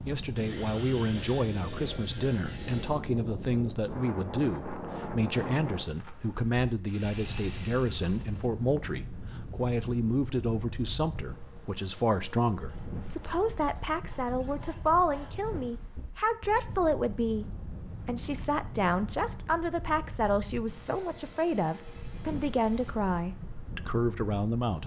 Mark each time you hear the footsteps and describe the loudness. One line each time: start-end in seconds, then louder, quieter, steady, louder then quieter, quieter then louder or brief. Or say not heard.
not heard.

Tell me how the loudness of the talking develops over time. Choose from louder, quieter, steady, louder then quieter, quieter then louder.
steady.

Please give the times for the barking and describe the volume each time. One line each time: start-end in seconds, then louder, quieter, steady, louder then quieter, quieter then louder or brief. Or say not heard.
not heard.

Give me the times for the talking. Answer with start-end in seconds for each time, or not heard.
0.1-24.8.